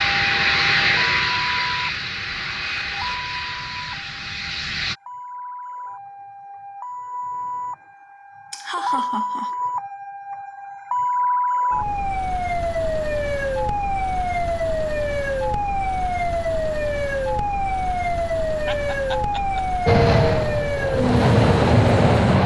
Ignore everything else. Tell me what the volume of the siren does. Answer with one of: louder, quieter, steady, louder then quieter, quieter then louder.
louder.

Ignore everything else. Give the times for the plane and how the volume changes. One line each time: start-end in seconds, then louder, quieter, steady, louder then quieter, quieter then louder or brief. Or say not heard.
0.0-5.0 quieter
19.9-22.4 brief.